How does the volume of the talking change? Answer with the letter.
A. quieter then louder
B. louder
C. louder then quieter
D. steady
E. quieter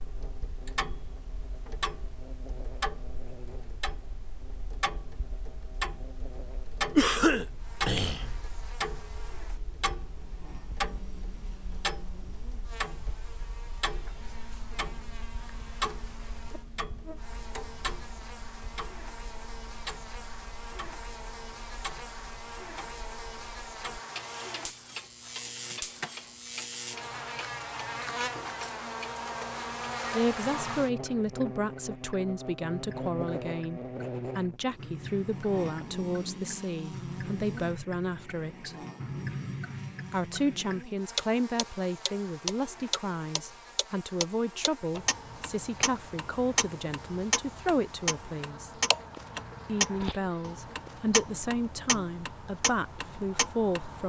D.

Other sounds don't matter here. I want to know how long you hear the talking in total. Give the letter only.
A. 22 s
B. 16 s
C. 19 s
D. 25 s
A.